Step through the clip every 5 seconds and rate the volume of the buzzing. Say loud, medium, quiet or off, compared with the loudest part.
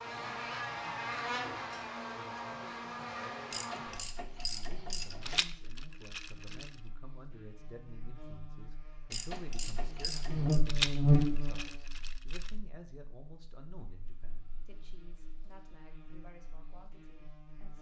medium, quiet, loud, quiet.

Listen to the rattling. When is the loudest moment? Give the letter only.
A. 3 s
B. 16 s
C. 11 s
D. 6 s
C.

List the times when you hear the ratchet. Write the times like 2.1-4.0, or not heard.
3.5-5.5, 9.1-10.6.